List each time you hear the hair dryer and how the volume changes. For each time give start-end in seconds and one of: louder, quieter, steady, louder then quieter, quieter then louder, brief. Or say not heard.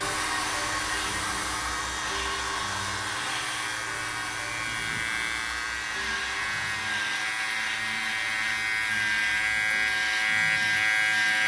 0.0-11.2 quieter.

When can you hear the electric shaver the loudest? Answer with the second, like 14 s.
11 s.